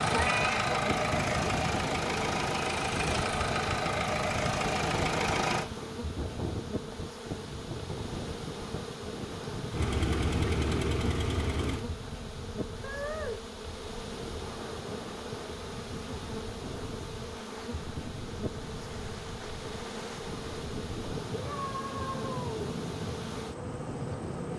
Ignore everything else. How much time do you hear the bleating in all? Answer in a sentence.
The bleating can't be heard in this clip.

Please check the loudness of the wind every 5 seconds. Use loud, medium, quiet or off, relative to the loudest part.
loud, loud, medium, medium, loud.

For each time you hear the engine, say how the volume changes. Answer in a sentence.
You can hear the engine from 0.0 to 5.7 s, at a steady volume; and briefly from 9.7 to 11.8 s.